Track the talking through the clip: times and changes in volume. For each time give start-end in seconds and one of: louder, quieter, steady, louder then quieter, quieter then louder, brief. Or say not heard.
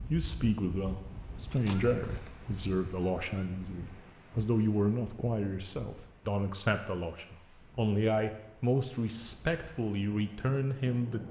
0.1-11.2 steady.